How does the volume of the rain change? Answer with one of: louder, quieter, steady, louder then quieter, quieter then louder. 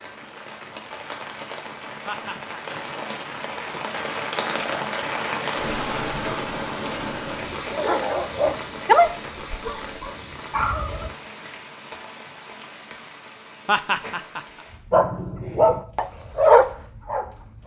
louder then quieter.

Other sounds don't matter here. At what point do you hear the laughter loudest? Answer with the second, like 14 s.
14 s.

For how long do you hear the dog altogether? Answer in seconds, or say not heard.
6 s.